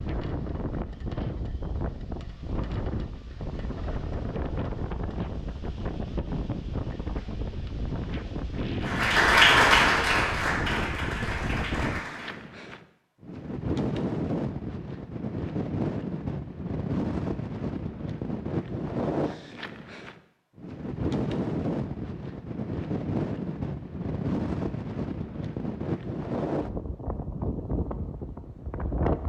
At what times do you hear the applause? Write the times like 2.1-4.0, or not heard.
8.8-12.4.